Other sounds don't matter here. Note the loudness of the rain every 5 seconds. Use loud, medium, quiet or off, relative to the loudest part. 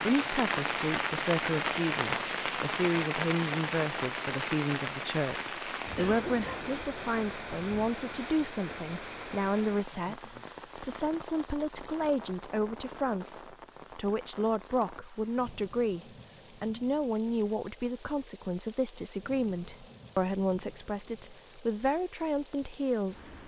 loud, medium, quiet, quiet, quiet.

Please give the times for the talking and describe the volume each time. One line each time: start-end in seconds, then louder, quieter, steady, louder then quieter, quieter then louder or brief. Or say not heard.
0.0-23.4 steady.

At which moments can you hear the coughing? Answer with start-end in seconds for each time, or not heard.
6.0-6.7.